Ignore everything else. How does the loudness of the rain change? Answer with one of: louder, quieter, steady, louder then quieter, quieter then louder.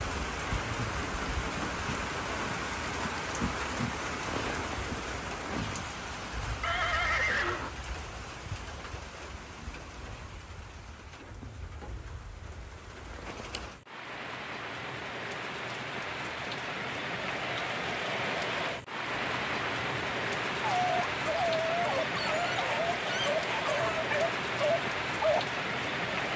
quieter then louder.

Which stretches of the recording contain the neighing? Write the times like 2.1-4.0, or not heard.
6.6-7.7.